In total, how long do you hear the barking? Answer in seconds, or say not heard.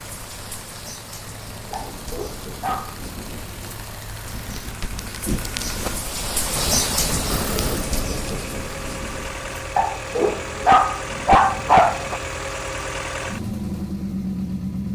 4 s.